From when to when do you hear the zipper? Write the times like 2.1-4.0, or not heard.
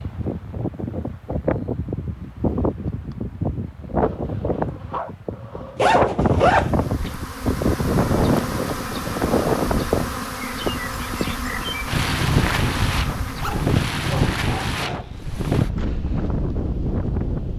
5.8-7.2, 12.4-13.6.